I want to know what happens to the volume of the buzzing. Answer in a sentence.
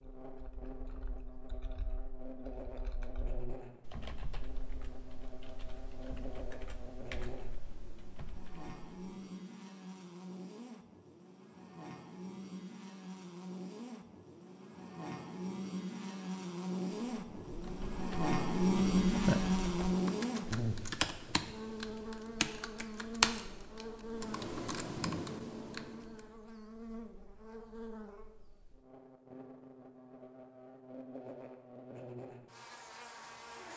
The loudness of the buzzing goes up, then down.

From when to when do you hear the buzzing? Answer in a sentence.
You can hear the buzzing from 0.0 to 33.7 s.